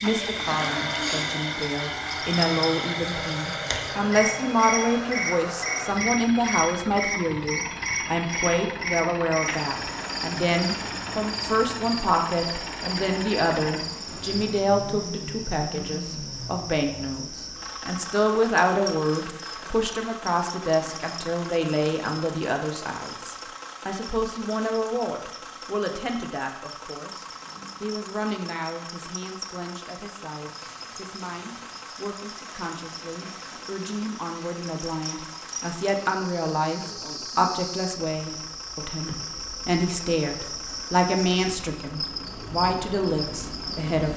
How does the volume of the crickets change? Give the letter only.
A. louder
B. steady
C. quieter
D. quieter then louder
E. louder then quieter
D.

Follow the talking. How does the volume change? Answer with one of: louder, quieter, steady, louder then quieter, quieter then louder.
quieter then louder.